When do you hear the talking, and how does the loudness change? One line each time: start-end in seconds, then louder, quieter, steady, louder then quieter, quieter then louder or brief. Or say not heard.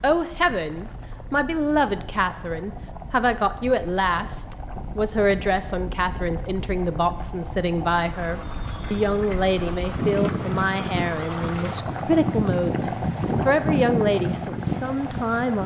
0.0-15.6 steady.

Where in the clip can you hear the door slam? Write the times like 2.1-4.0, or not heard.
not heard.